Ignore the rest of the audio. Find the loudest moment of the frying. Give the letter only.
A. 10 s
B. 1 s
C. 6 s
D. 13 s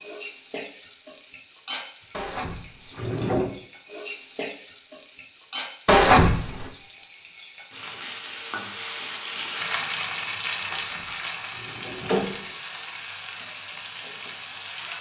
A.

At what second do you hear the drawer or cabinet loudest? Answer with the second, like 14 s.
6 s.